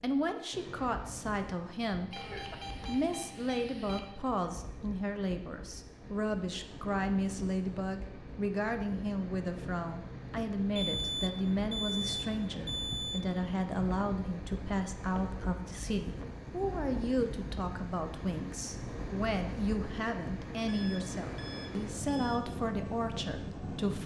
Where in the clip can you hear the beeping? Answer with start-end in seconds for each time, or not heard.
2.1-4.0, 10.8-13.2, 20.6-22.4.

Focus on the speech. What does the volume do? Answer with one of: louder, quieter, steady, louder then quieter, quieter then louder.
steady.